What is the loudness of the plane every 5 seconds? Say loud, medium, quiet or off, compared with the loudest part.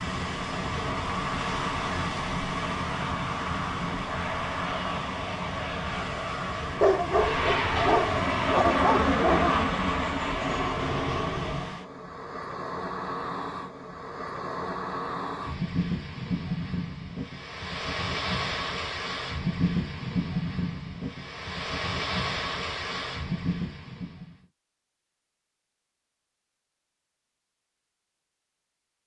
medium, loud, loud, off, off, off.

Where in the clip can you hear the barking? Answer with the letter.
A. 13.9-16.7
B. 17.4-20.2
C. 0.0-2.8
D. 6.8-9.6
D.